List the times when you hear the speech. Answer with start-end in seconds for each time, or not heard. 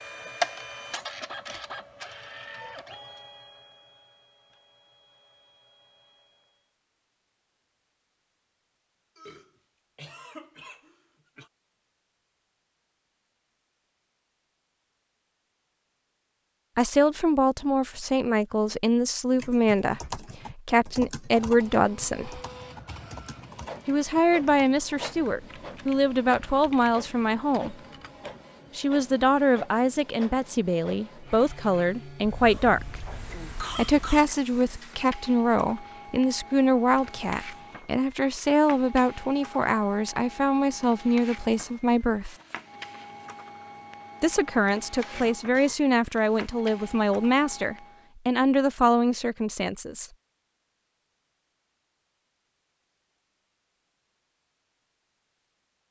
16.8-22.4, 23.9-27.8, 28.8-33.0, 33.8-42.4, 44.2-50.0.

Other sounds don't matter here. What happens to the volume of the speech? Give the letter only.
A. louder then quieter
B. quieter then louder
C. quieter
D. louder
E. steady
E.